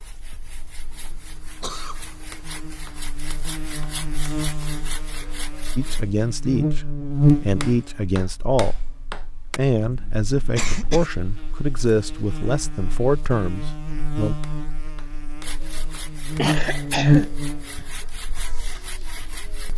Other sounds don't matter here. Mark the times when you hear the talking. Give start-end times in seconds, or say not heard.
5.8-14.3.